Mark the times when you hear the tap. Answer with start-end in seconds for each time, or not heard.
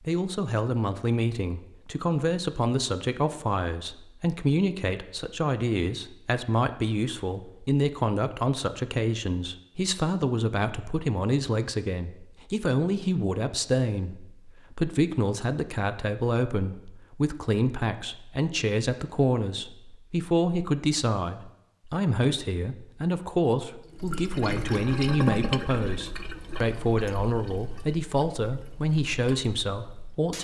23.9-30.3.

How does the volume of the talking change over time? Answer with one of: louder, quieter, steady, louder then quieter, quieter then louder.
steady.